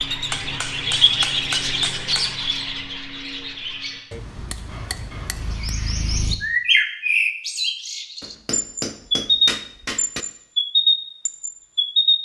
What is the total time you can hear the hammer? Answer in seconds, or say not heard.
6 s.